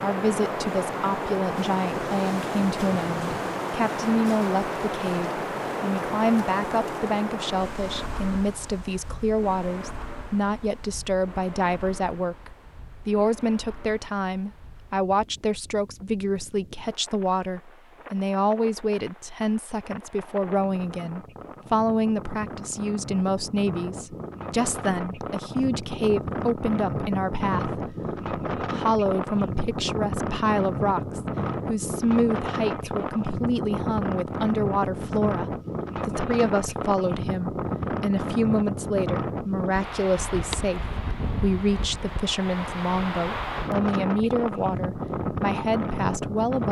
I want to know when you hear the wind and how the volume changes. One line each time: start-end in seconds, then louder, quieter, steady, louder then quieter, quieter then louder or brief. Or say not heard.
0.0-46.6 quieter then louder.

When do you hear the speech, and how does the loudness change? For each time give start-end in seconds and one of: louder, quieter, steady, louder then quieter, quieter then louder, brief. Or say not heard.
0.0-46.6 steady.